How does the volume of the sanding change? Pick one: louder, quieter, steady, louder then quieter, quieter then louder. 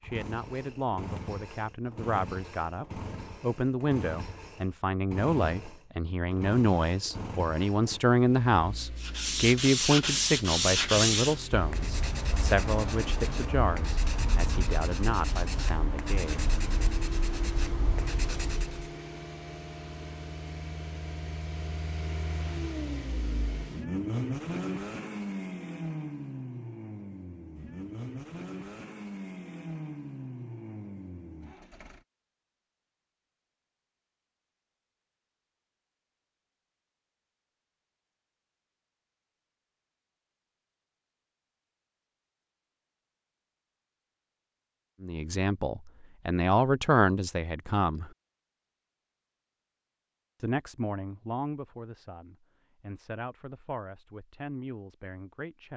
quieter.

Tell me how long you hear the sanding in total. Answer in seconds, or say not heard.
10 s.